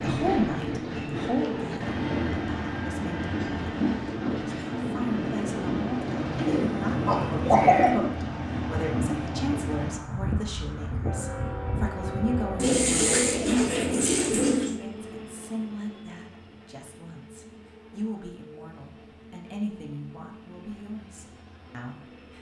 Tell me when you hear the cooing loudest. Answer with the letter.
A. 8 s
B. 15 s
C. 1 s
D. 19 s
A.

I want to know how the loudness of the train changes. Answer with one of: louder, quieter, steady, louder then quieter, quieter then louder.
quieter.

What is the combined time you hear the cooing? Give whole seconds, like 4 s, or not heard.
4 s.